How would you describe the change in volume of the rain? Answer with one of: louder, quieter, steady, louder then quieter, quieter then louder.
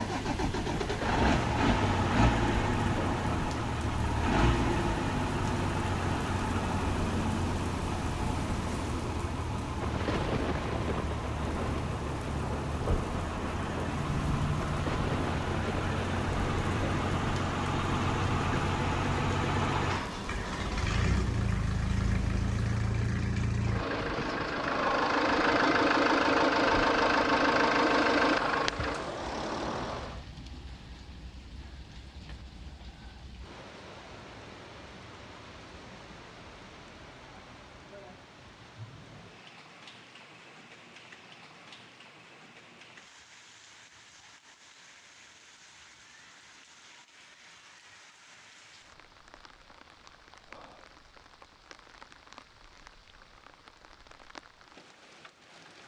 quieter.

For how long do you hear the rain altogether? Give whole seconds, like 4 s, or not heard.
56 s.